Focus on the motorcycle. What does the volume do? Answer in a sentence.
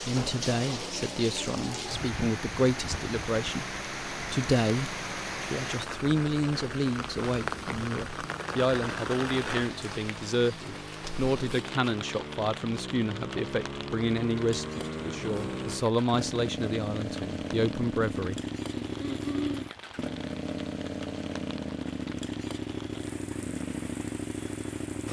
The loudness of the motorcycle goes up.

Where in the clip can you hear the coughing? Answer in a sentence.
You can hear the coughing from 18.8 to 19.6 s.